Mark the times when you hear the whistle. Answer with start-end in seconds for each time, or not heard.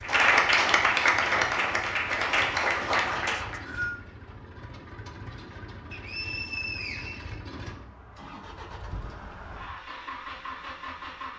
3.2-4.0, 5.9-7.4.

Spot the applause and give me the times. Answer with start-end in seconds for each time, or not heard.
0.0-3.6.